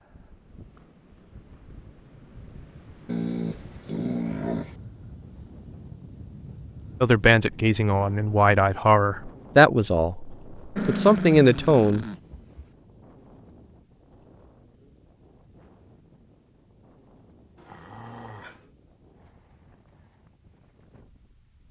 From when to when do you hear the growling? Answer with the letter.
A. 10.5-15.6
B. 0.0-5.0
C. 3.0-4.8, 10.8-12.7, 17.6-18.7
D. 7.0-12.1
C.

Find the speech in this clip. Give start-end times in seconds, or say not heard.
7.0-12.1.